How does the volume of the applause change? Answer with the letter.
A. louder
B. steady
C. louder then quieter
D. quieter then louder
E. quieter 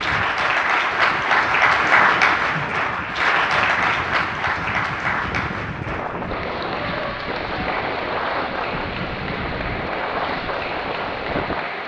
E.